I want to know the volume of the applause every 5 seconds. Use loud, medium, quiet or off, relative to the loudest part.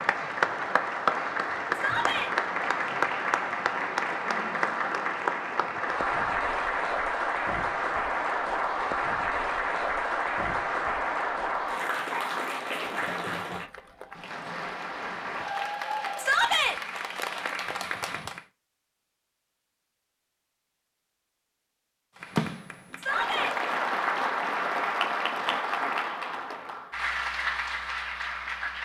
loud, loud, loud, medium, loud, loud.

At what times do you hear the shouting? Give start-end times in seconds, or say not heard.
1.7-2.3, 16.1-16.8, 22.9-23.6.